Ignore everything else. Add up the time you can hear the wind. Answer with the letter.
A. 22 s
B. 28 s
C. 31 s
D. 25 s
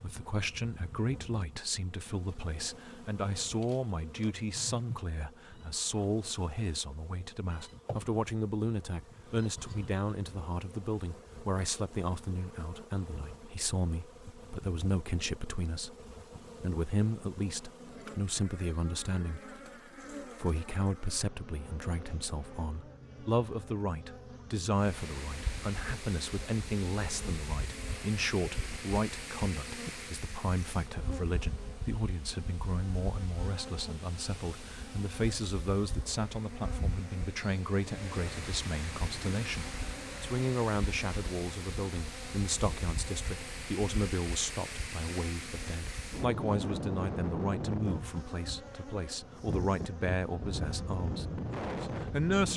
B.